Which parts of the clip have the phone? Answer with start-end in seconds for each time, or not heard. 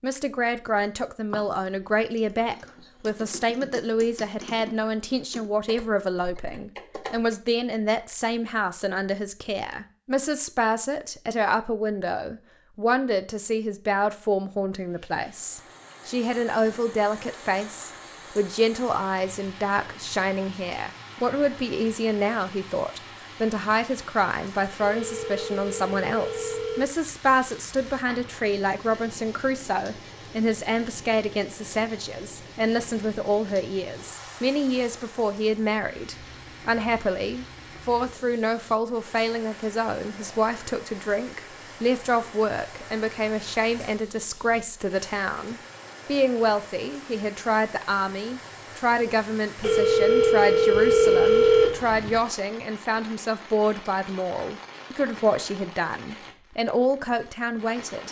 24.8-27.4, 49.6-52.2.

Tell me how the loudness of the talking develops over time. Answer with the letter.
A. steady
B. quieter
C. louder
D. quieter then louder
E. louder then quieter
A.